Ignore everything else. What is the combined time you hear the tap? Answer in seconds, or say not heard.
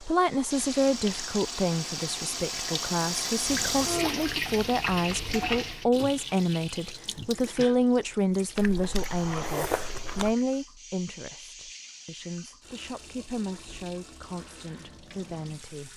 16 s.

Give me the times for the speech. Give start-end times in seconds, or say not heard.
0.0-15.9.